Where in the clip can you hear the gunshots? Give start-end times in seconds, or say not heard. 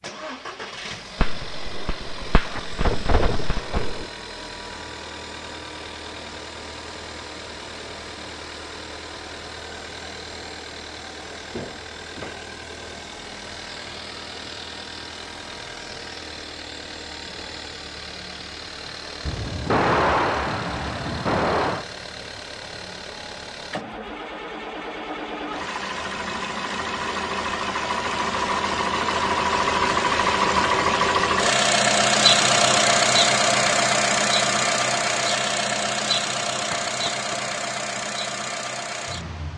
1.2-4.0, 19.2-21.9, 36.7-38.0.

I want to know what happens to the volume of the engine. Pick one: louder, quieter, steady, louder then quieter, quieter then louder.
louder.